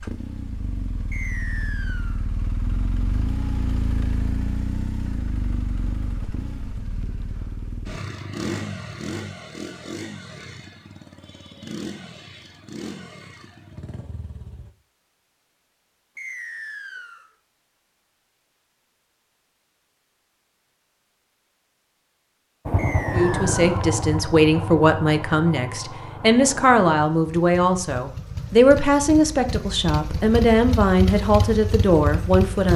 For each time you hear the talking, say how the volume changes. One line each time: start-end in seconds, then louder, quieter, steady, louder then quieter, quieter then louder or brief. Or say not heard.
23.1-32.7 steady.